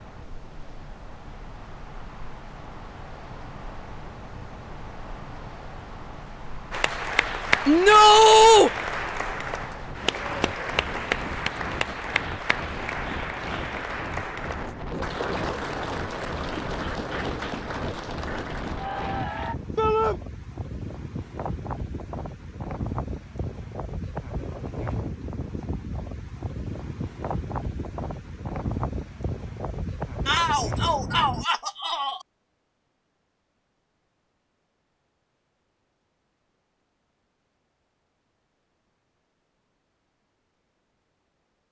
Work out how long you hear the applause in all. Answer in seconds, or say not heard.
13 s.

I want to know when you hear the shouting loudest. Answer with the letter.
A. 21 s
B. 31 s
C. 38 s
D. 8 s
D.